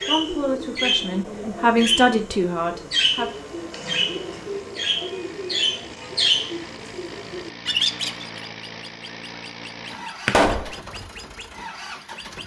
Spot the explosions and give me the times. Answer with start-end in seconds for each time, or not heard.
10.2-10.8.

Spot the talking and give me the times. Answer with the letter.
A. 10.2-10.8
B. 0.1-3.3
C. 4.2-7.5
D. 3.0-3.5
B.